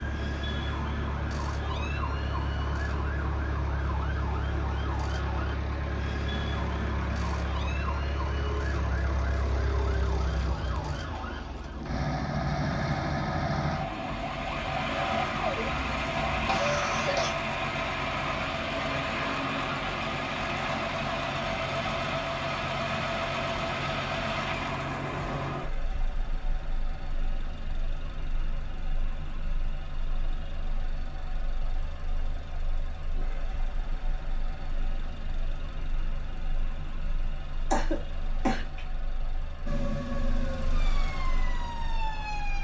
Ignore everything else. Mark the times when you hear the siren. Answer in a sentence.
The siren can be heard from 0.0 to 16.5 s and from 39.6 to 42.5 s.